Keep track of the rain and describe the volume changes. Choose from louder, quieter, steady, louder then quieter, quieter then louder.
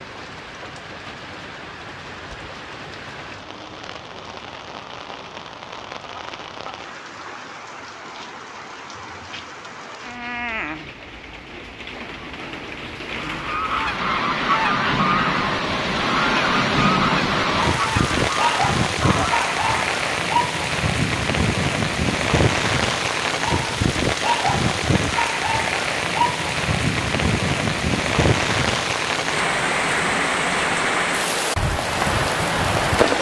louder.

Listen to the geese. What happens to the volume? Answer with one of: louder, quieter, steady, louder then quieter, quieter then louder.
steady.